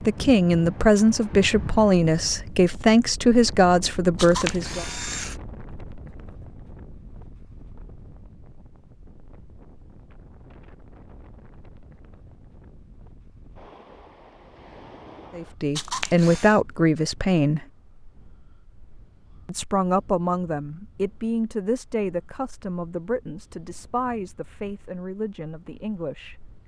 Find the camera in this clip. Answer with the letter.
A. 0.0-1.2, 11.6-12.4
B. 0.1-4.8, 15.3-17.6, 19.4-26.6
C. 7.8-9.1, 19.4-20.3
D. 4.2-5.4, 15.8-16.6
D.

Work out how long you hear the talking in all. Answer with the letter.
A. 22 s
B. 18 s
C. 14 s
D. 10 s
C.